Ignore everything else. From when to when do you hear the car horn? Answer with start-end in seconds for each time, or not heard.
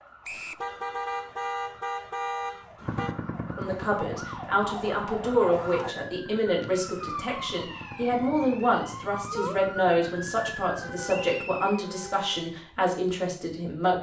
0.6-3.1, 6.6-7.3, 10.7-12.4.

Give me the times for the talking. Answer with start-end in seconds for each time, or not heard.
3.5-13.9.